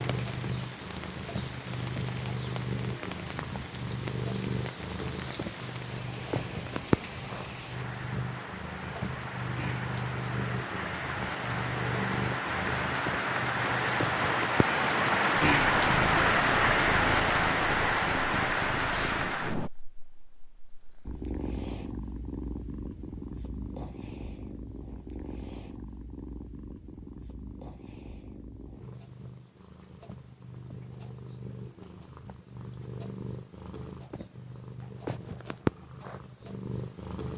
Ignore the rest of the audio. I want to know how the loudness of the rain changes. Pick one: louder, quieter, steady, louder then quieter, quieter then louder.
louder.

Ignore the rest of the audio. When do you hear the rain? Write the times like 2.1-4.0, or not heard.
0.0-19.7.